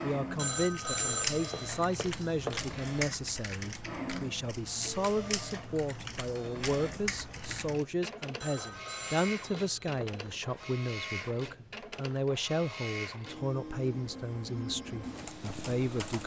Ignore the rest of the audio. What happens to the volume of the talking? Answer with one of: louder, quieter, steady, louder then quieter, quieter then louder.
steady.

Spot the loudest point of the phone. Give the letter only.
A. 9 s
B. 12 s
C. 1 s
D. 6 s
C.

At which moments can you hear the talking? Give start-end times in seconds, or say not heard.
0.0-16.2.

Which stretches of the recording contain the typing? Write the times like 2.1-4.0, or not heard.
0.8-7.8, 15.0-16.2.